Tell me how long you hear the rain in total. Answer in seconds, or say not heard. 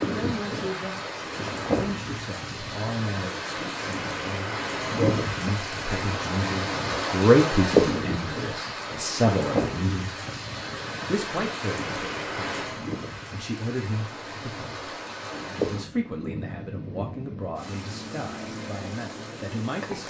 20 s.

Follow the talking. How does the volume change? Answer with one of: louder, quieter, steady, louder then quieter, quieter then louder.
louder then quieter.